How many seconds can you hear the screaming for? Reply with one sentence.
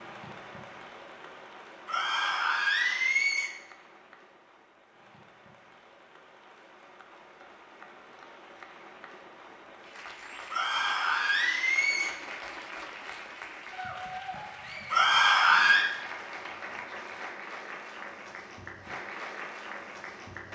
You can hear the screaming for 4 seconds altogether.